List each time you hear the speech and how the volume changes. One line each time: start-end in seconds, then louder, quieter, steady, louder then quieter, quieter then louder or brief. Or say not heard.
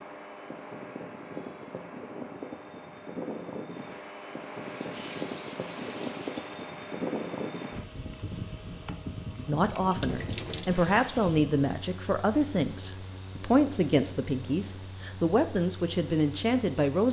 9.4-17.0 steady.